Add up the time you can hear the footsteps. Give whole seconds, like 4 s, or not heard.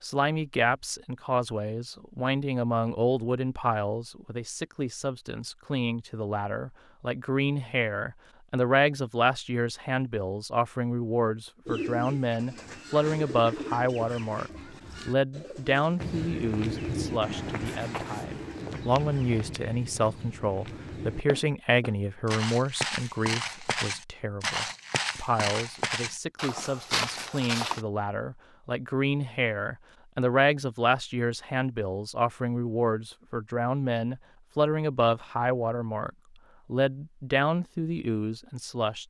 12 s.